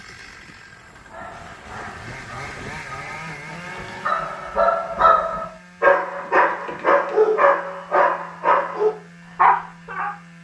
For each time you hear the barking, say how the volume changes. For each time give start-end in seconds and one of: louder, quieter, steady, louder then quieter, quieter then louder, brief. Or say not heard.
1.1-10.1 louder.